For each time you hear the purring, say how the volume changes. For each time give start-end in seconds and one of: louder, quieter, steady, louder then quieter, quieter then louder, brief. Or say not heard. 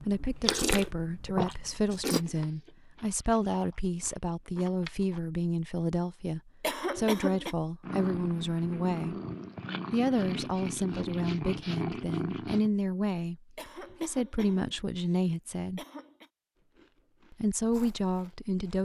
7.8-12.7 louder.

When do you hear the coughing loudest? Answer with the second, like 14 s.
7 s.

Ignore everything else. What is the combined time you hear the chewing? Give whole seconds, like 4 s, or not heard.
7 s.